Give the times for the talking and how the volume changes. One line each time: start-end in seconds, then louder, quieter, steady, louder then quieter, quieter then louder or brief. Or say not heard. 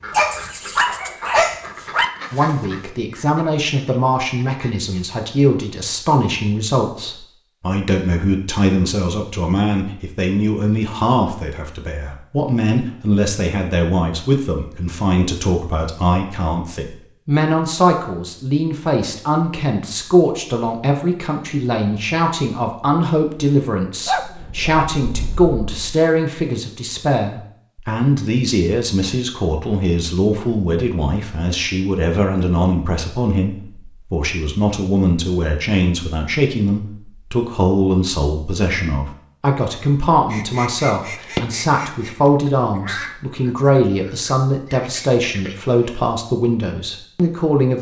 2.3-47.7 steady.